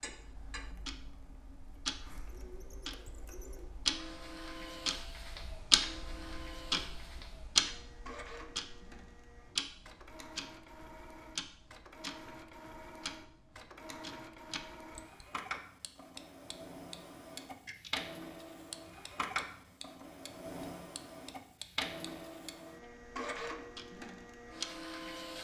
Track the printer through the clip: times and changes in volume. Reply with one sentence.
The printer can be heard from 0.0 to 25.4 s, getting louder.